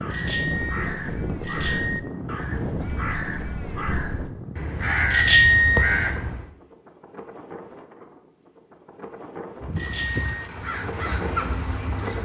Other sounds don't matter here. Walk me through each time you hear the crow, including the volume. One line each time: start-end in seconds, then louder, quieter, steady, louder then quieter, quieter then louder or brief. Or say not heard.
0.0-6.5 louder
9.6-12.1 brief.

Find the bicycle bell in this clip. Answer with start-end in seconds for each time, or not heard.
0.1-2.0, 5.1-6.0, 9.8-10.4.